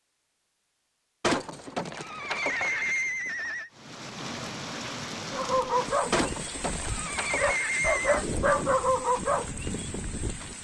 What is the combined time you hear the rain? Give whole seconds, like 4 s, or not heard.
7 s.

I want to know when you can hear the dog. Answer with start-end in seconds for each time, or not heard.
5.3-10.5.